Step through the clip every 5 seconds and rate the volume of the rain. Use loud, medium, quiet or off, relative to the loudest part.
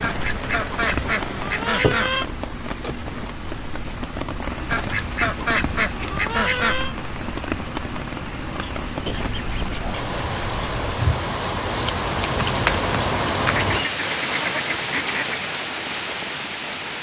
medium, medium, loud, loud.